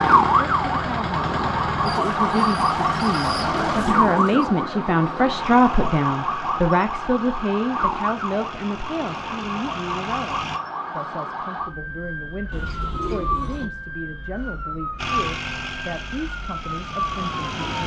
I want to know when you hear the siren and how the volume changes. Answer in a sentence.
You can hear the siren from 0.0 to 17.8 s, getting quieter.